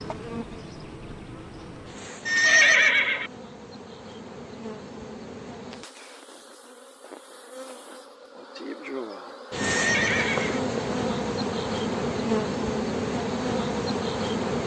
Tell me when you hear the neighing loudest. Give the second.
3 s.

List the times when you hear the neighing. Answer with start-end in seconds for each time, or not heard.
2.2-3.3, 9.6-10.6.